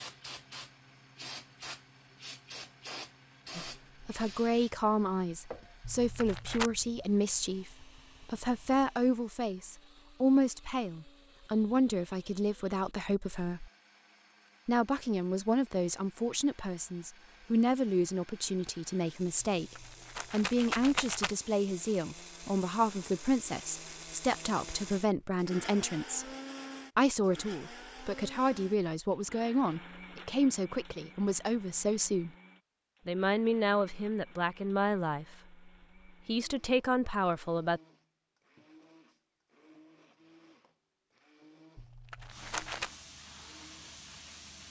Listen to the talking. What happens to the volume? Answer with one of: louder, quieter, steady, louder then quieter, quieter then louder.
steady.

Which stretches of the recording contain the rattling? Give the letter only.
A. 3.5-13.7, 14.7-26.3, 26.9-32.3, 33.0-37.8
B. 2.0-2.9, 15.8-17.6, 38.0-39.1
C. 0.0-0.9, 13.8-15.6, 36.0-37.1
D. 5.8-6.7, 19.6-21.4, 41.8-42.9
D.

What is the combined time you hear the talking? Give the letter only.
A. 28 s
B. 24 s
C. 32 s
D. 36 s
C.